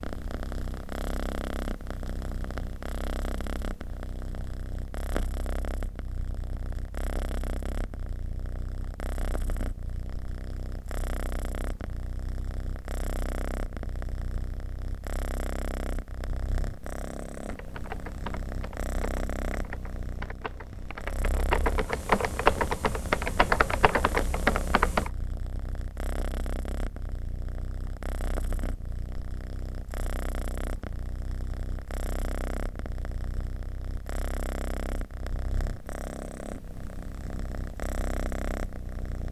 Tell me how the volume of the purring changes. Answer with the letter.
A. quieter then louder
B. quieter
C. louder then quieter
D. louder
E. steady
E.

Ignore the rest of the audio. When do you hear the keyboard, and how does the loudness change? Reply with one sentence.
You can hear the keyboard from 17.4 to 25.1 s, getting louder.